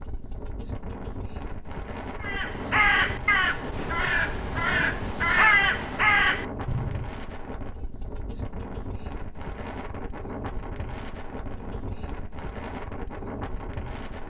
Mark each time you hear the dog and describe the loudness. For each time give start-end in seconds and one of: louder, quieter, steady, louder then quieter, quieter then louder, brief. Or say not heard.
not heard.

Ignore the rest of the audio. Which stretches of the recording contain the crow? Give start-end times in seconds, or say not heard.
2.2-7.2.